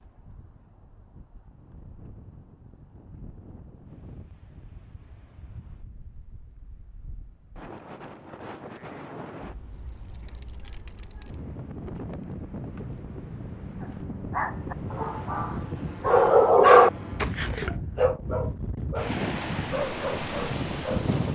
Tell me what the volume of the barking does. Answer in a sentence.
The loudness of the barking goes up, then down.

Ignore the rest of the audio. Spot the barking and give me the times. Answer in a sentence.
You can hear the barking from 13.8 to 21.1 s.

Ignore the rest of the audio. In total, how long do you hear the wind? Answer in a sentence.
The wind can be heard for 21 seconds in total.